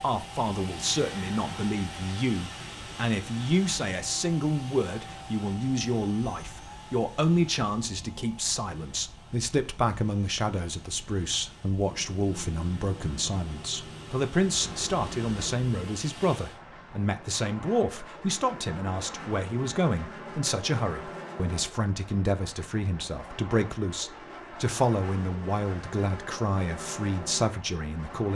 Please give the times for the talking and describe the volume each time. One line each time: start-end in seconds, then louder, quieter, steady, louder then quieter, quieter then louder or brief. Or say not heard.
0.0-28.3 steady.